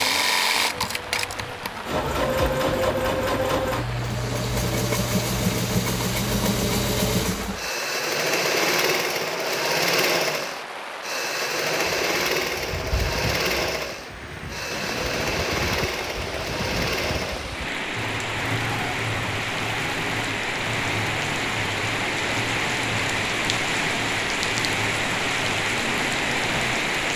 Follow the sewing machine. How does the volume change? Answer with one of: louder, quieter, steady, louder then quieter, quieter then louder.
quieter.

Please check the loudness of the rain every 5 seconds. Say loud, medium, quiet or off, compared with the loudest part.
medium, medium, medium, medium, loud, loud.